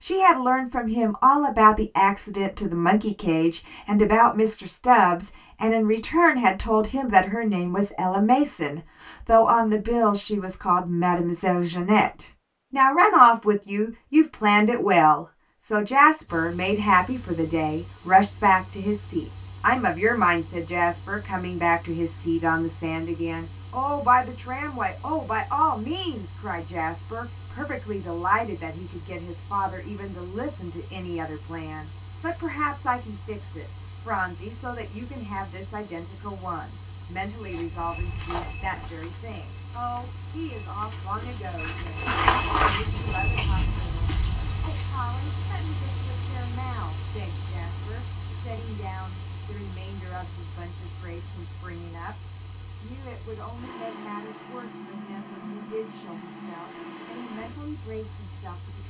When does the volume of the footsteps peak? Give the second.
42 s.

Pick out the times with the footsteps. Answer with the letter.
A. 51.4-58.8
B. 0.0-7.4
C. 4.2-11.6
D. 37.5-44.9
D.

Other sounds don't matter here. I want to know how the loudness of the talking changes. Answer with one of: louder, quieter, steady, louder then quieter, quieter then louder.
quieter.